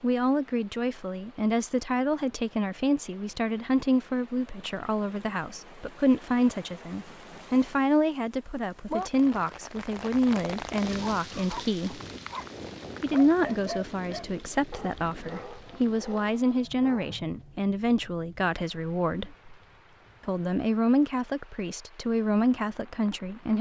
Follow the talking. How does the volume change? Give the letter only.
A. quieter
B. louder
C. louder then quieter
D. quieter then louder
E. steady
E.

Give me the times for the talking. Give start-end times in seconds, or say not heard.
0.0-12.0, 13.0-19.4, 20.2-23.5.